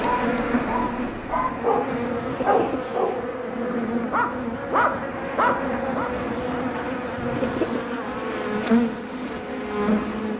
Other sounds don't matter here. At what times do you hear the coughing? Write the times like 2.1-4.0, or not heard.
2.1-3.0, 7.2-7.8.